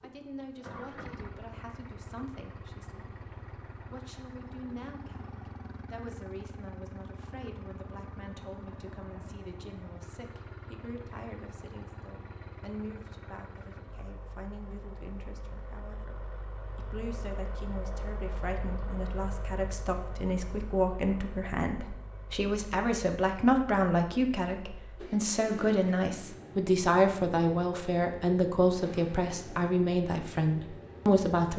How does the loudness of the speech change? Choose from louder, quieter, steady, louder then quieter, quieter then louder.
louder.